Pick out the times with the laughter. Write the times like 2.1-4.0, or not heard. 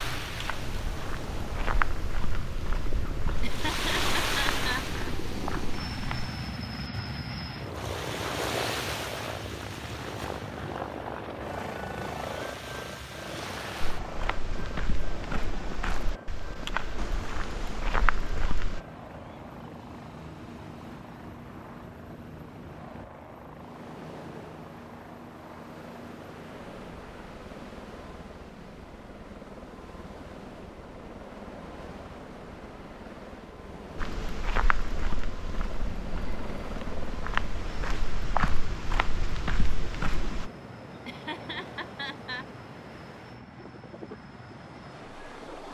3.3-5.0, 41.0-42.5.